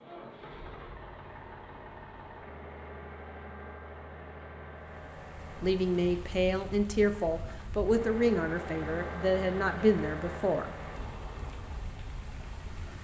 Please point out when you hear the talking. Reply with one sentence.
You can hear the talking from 5.6 to 10.8 s.